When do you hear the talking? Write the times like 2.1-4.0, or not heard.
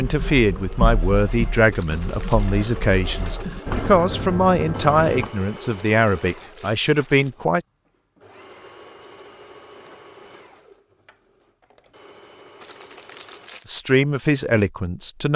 0.0-7.6, 13.7-15.3.